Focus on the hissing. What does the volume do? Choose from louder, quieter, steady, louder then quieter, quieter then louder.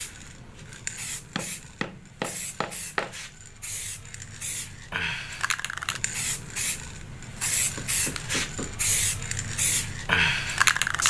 louder.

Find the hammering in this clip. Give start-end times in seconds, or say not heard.
1.4-3.1, 7.5-8.9.